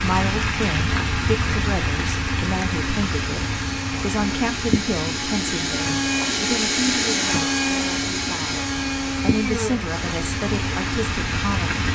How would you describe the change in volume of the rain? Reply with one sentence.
The volume of the rain goes down, then up.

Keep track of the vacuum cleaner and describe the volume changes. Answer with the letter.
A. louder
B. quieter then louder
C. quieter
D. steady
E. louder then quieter
E.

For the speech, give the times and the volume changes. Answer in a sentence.
You can hear the speech from 0.0 to 11.8 s, getting quieter then louder.